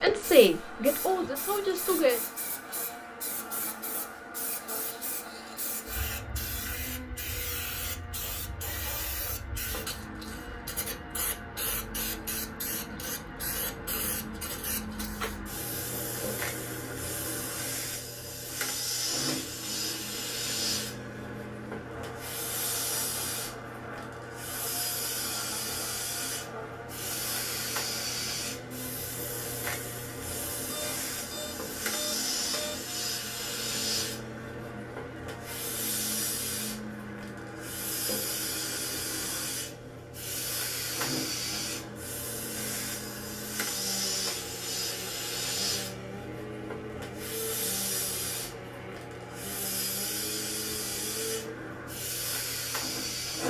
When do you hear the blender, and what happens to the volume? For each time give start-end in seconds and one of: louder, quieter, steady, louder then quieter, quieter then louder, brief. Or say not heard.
0.0-53.4 steady.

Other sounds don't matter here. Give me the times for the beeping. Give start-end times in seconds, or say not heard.
30.4-32.9.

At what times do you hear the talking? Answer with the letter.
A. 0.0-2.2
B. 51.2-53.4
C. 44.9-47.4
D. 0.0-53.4
A.